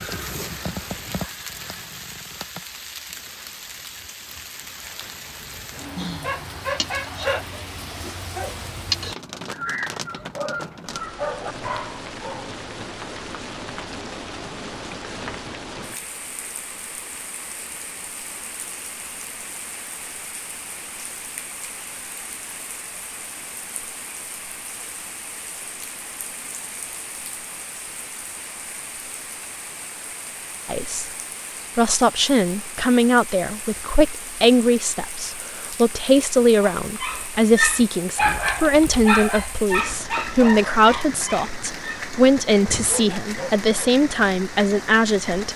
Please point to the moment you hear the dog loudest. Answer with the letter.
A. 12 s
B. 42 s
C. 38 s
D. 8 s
C.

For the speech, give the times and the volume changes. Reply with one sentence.
The speech can be heard briefly from 30.6 to 31.1 s; and from 31.8 to 45.5 s, at a steady volume.